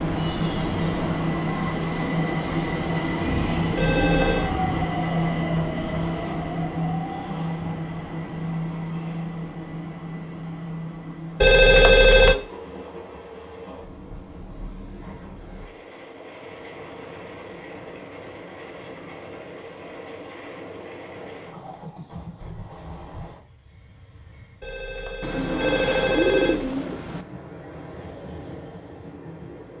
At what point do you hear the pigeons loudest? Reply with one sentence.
The volume of the pigeons peaks at 26 seconds.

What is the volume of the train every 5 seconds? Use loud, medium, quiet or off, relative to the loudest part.
loud, loud, quiet, quiet, quiet, quiet.